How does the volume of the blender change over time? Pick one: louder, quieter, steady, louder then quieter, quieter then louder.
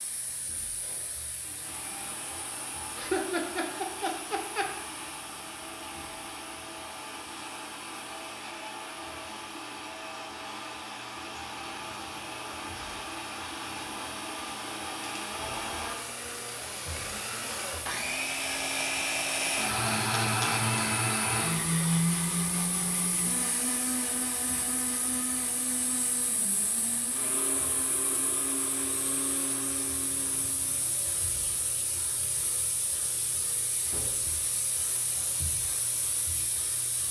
louder then quieter.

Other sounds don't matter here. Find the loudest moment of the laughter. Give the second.
3 s.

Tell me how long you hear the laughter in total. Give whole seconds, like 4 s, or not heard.
2 s.